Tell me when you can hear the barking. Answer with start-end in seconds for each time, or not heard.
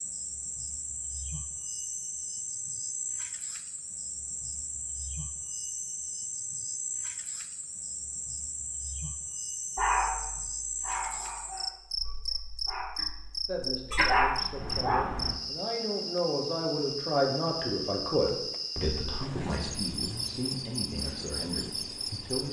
9.8-15.4.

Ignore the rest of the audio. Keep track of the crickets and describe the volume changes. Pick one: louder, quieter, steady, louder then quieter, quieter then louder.
steady.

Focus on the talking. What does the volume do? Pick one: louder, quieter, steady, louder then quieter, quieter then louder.
louder then quieter.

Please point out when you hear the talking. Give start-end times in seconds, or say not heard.
13.4-22.4.